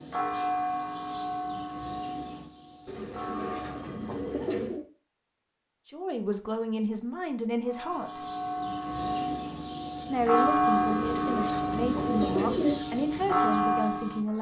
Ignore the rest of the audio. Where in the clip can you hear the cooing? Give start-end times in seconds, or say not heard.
2.9-4.8, 10.8-12.8.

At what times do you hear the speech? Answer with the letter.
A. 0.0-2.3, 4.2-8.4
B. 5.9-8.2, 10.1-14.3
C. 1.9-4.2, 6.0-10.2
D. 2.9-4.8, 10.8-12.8
B.